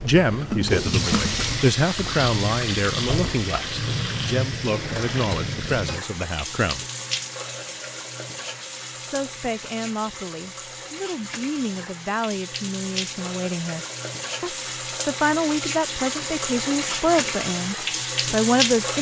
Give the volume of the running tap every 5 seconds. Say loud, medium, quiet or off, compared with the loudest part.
loud, medium, medium, loud.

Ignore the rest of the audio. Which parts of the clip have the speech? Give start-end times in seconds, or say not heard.
0.0-6.8, 8.9-18.9.